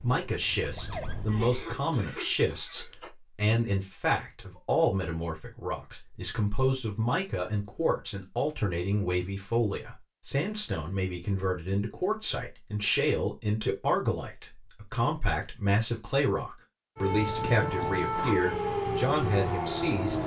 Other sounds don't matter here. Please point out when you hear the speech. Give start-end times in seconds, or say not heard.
0.0-20.2.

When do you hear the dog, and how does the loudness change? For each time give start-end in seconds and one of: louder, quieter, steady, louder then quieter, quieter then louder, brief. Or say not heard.
not heard.